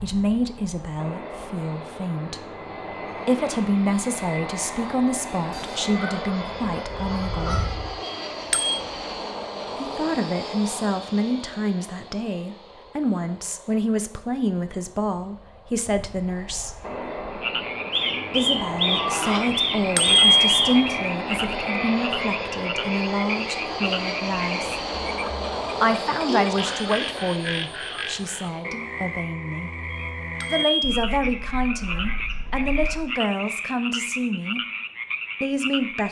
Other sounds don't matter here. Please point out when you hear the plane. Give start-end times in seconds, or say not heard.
0.0-28.9.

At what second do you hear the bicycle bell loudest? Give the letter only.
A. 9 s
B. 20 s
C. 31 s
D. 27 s
B.